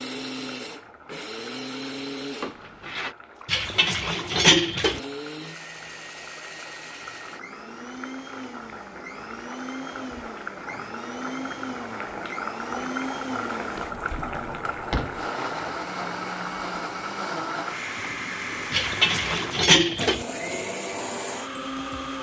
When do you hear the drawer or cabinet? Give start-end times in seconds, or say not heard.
2.4-3.1, 13.8-15.2.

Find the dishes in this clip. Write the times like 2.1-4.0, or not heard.
3.5-5.0, 18.7-20.2.